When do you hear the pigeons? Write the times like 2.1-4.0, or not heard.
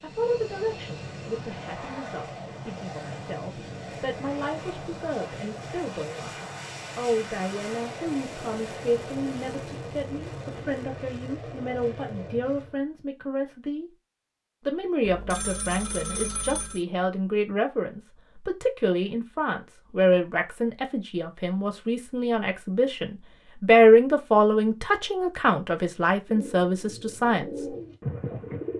26.2-28.7.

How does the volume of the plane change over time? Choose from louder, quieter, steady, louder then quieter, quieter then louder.
steady.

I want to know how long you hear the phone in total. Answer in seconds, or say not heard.
2 s.